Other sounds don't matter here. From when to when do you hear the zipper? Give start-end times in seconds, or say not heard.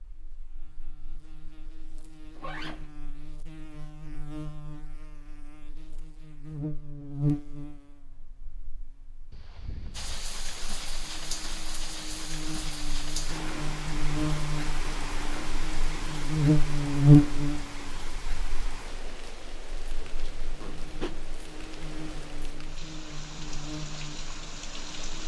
2.4-2.9, 9.3-10.2, 20.6-21.3.